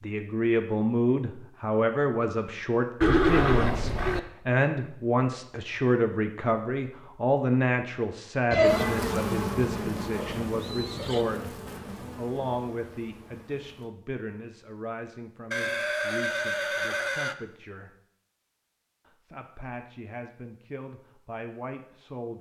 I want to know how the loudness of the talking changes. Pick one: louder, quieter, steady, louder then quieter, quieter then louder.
quieter.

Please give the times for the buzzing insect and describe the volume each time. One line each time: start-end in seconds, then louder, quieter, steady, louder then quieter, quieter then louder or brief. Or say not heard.
8.6-13.9 quieter.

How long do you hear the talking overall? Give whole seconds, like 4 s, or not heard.
21 s.